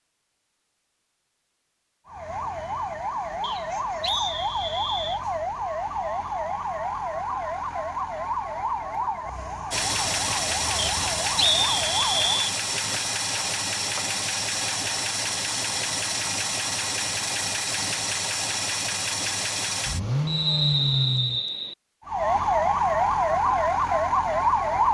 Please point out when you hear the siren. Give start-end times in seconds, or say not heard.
2.0-12.5, 22.1-24.9.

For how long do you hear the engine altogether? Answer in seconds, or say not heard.
12 s.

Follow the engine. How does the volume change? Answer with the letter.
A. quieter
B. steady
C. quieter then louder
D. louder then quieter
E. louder
B.